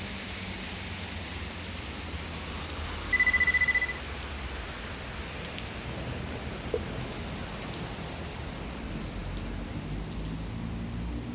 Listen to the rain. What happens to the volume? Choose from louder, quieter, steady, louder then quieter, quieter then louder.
steady.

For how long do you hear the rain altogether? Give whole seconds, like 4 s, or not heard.
11 s.